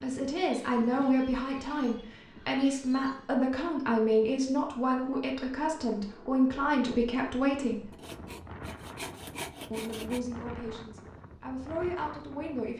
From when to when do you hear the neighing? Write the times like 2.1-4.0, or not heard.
not heard.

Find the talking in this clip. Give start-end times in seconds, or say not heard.
0.0-7.9, 9.7-12.7.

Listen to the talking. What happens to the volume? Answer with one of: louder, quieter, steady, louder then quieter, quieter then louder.
quieter.